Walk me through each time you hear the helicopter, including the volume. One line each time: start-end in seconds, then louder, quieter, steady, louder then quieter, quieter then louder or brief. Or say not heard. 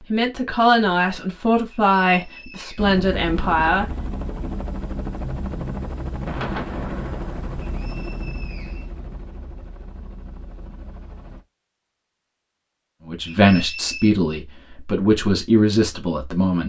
2.8-11.4 quieter.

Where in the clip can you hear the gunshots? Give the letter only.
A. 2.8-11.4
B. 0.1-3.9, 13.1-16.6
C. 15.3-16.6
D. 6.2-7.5
D.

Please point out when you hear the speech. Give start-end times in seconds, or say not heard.
0.1-3.9, 13.1-16.6.